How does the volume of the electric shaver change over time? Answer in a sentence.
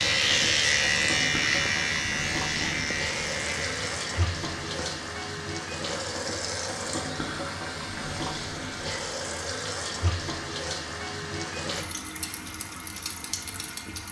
The volume of the electric shaver goes down.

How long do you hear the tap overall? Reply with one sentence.
You can hear the tap for 14 seconds altogether.